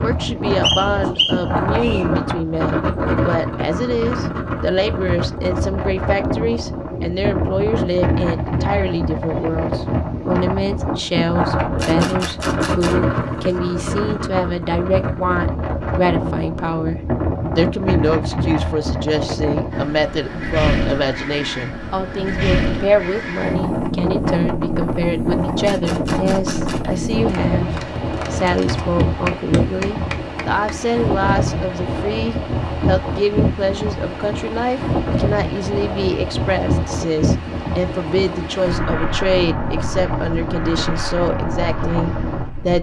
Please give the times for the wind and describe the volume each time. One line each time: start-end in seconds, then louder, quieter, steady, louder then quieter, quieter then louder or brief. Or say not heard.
0.0-42.7 steady.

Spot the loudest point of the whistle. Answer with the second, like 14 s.
1 s.